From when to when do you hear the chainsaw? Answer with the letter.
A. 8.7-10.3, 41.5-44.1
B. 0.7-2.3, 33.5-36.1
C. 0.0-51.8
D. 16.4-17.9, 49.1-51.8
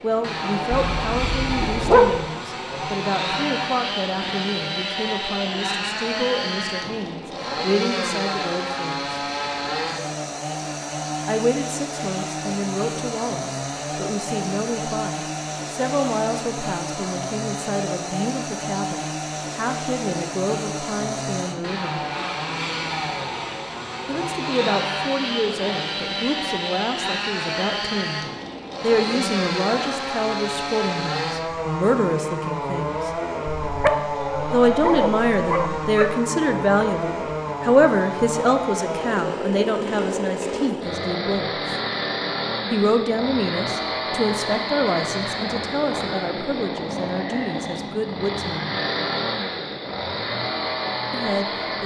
C.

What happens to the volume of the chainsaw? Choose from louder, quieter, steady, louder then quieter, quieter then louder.
steady.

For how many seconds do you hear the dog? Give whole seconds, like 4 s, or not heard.
4 s.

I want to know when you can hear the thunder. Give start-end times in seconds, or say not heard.
not heard.